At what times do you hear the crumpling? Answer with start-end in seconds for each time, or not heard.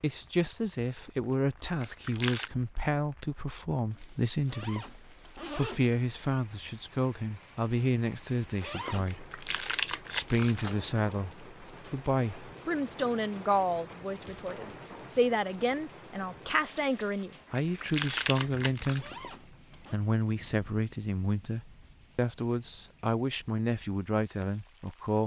1.8-2.5, 9.1-10.8, 17.6-19.1.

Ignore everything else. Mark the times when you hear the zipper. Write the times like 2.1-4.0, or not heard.
4.5-6.0, 8.6-9.1, 18.9-20.0.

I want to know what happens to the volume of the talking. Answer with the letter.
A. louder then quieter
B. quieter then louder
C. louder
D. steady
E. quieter
D.